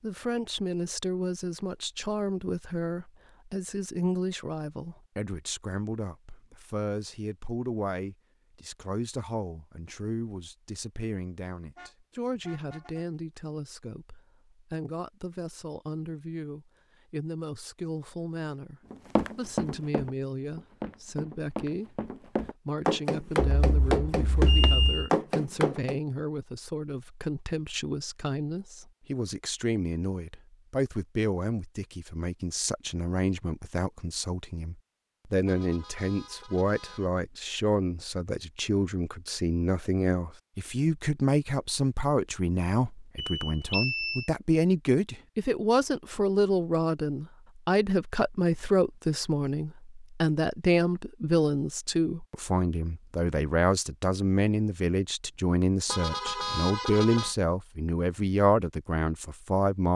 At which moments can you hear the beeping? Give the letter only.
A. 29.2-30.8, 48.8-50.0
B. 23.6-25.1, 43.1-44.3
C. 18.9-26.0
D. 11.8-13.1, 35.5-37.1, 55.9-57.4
B.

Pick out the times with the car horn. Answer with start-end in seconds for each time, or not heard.
11.8-13.1, 35.5-37.1, 55.9-57.4.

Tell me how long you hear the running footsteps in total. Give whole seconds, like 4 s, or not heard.
7 s.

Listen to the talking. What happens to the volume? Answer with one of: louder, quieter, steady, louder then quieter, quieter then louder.
louder.